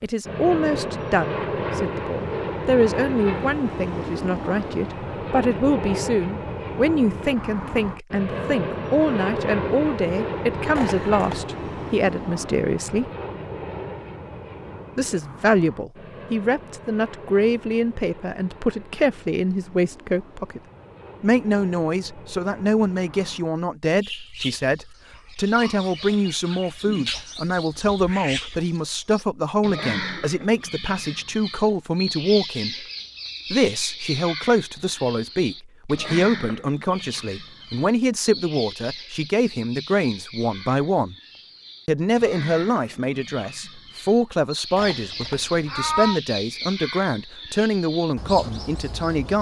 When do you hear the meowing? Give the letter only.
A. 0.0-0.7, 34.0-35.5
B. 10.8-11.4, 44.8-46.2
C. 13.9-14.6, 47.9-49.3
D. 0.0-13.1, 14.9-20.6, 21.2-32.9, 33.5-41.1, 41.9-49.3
B.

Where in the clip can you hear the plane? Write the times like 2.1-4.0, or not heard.
0.2-23.6.